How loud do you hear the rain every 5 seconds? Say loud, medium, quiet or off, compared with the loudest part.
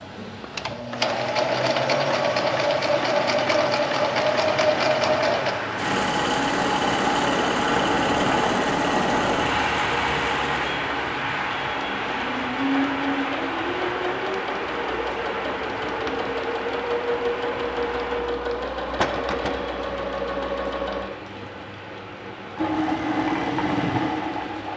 medium, loud, loud, medium, quiet.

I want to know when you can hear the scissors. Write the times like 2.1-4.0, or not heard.
not heard.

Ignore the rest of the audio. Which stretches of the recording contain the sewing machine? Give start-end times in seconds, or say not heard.
0.4-24.7.